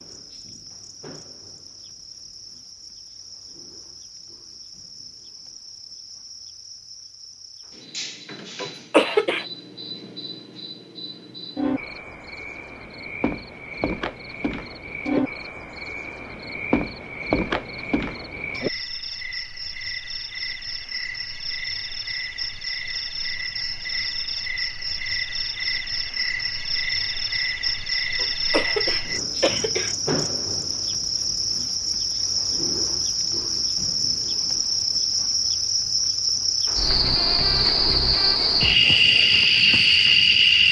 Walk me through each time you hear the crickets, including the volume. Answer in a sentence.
You can hear the crickets from 0.0 to 40.6 s, getting louder.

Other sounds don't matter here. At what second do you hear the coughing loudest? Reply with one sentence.
The volume of the coughing peaks at 9 seconds.